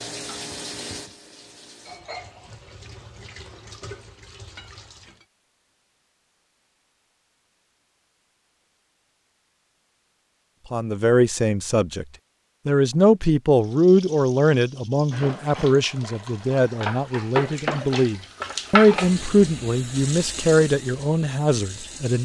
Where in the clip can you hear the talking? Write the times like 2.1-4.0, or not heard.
10.7-12.1, 12.7-22.1.